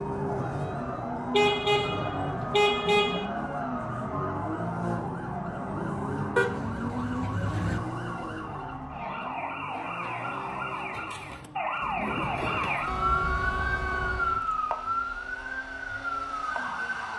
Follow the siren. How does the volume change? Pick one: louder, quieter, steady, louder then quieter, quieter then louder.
louder.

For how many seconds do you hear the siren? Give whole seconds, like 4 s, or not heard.
17 s.